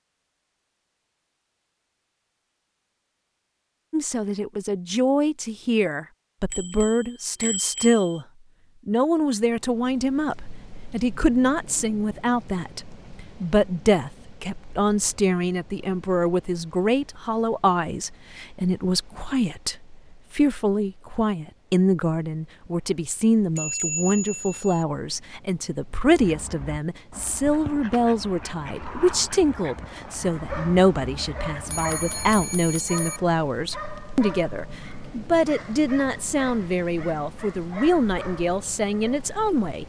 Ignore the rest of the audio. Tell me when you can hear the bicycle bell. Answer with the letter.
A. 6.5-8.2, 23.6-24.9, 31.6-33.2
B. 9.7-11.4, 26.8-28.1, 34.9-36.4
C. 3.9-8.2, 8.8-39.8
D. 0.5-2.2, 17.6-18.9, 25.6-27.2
A.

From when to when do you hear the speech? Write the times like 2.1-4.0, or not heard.
3.9-8.2, 8.8-39.8.